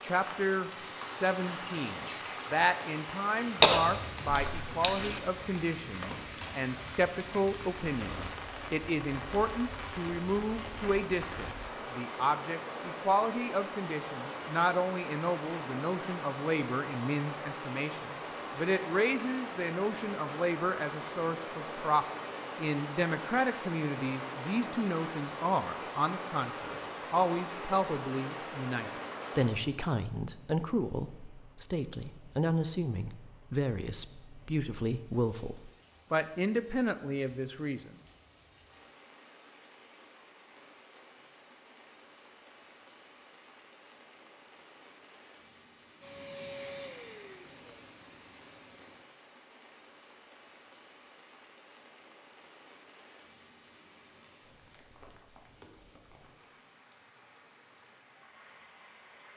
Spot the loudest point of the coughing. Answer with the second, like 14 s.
4 s.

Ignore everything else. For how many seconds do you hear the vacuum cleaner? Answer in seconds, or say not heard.
3 s.